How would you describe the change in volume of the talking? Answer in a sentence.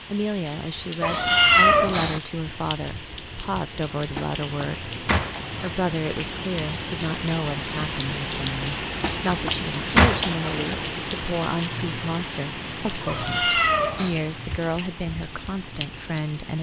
The volume of the talking stays about the same.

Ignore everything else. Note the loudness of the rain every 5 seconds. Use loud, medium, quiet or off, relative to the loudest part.
medium, loud, loud, medium.